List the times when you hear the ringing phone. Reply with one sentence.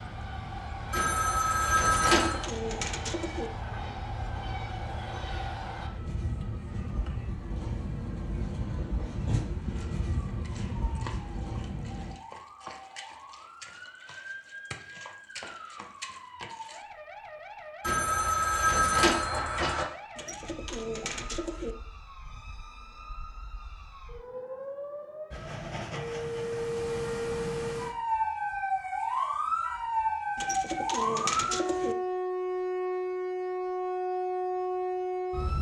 You can hear the ringing phone from 0.9 to 2.5 s and from 17.8 to 19.9 s.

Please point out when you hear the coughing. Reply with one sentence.
The coughing can't be heard in this clip.